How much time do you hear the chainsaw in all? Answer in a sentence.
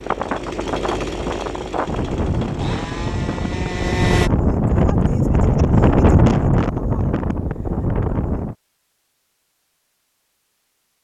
You can hear the chainsaw for 4 seconds altogether.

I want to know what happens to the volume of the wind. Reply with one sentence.
The loudness of the wind goes up, then down.